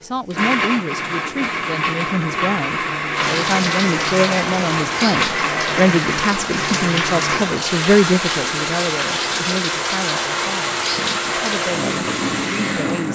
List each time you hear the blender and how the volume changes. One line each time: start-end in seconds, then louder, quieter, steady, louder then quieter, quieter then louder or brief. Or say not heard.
0.0-13.0 steady.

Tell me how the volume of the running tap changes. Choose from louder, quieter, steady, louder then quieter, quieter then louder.
steady.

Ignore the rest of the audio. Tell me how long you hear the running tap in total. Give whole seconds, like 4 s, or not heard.
10 s.